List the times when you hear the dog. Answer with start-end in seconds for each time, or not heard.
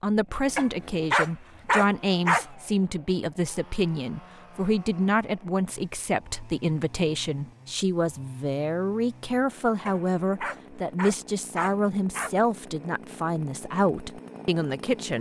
0.6-2.5, 9.8-12.3.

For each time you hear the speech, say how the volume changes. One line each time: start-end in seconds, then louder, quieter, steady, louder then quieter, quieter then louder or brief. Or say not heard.
0.0-15.1 steady.